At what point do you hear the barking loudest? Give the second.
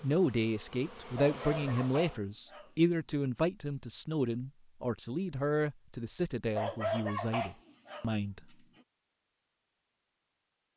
7 s.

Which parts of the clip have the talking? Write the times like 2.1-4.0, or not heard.
0.0-8.4.